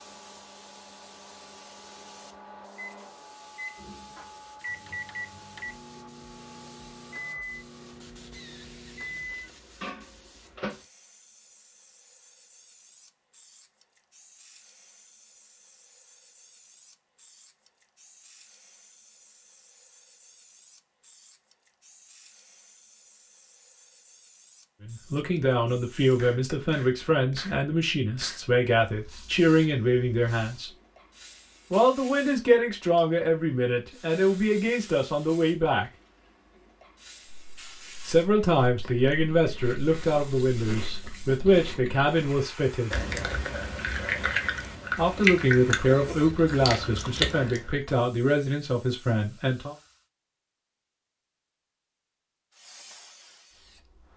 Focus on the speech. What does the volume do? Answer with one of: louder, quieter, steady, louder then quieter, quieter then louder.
steady.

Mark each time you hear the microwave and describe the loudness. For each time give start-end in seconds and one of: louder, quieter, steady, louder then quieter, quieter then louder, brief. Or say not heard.
0.0-10.8 louder.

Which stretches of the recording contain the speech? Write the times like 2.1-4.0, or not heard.
24.9-30.7, 31.7-35.9, 38.0-43.0, 45.0-49.8.